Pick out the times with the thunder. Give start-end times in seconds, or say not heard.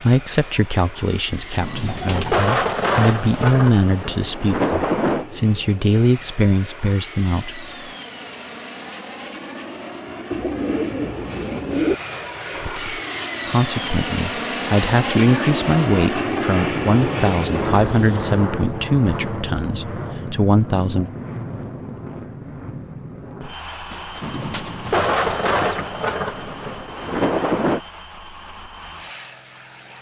1.6-5.2, 24.2-27.8.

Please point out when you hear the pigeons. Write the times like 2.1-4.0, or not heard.
1.4-3.1, 10.3-11.9, 16.8-18.4, 23.9-25.9.